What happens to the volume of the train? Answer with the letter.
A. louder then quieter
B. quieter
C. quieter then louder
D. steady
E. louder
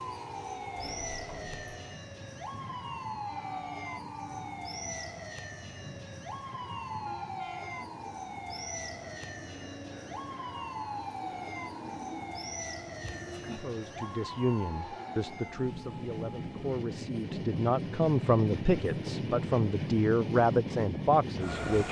E.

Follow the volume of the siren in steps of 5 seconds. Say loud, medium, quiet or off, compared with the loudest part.
loud, loud, loud, medium, off.